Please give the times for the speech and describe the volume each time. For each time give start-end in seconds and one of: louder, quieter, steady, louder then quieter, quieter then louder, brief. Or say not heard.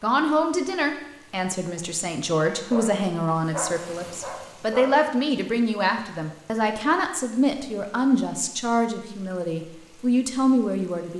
0.0-11.1 steady.